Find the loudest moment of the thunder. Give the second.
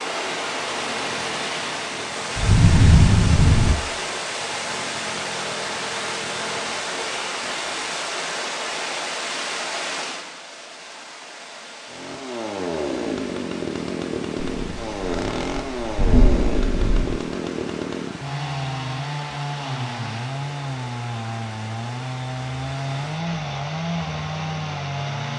3 s.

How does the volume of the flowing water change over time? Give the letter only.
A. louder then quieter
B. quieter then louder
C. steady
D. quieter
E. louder
D.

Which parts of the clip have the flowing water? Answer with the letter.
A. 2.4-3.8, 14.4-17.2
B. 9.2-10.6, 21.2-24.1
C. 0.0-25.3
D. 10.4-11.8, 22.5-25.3
C.